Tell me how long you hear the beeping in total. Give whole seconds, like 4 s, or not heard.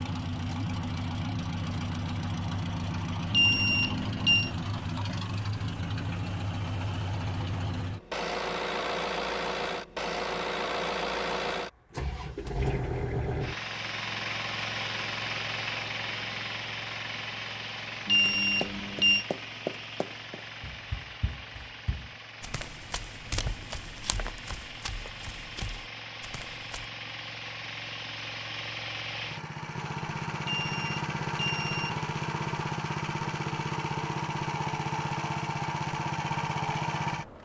4 s.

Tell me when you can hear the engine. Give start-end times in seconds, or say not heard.
0.0-37.4.